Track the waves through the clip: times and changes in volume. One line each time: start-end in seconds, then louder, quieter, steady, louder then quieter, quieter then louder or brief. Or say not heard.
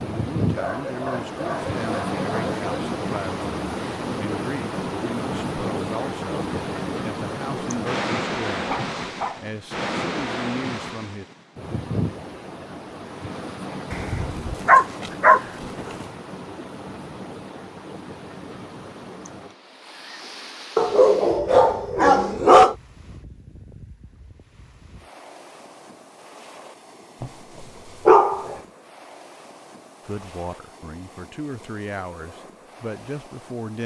0.0-33.8 quieter.